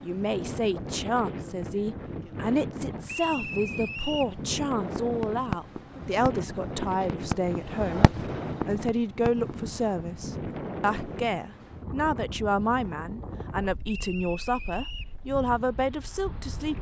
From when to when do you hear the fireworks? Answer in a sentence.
The fireworks can be heard from 4.8 to 9.9 s.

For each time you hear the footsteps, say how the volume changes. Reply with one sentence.
You can't hear the footsteps here.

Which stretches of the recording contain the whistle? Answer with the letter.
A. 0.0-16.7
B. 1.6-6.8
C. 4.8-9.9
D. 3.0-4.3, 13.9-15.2
D.